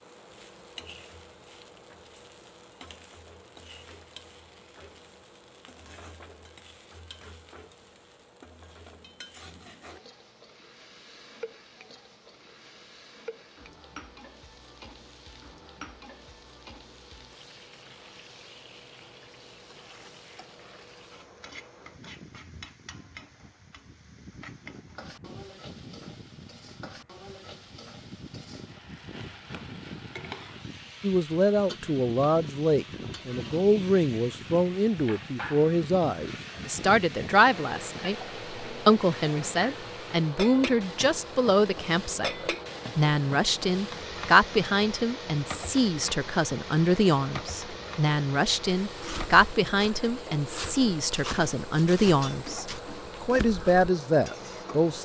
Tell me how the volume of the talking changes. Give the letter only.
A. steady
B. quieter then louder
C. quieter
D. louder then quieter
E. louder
A.